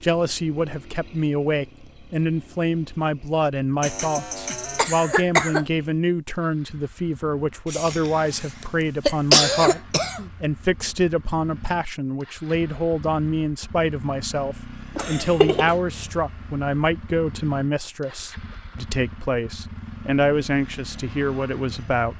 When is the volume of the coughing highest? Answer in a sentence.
The loudest moment of the coughing is at 9 seconds.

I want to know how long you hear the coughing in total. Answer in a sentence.
The coughing can be heard for 5 seconds in total.